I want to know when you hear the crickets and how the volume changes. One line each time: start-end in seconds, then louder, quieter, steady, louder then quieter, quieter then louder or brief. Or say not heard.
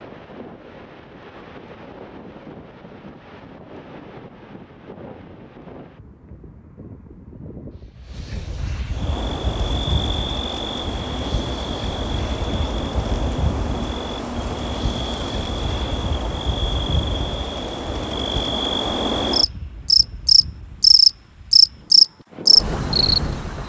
8.9-23.6 louder.